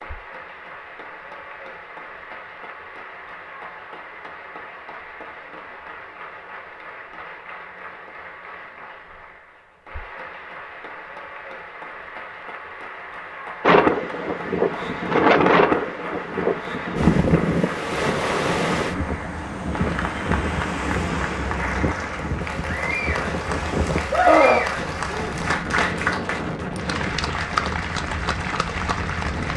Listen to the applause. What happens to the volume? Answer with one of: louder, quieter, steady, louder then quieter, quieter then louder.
louder.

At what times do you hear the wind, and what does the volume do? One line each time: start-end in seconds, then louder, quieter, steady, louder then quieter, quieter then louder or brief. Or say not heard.
13.6-29.5 quieter.